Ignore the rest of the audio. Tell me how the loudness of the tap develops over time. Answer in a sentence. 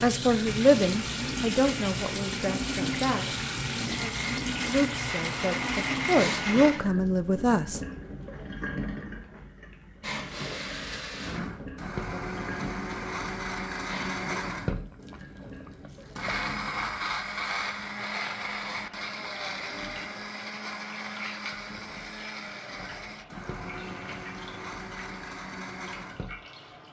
The loudness of the tap goes down.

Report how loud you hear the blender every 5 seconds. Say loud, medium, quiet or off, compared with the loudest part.
medium, loud, loud, loud, medium, medium.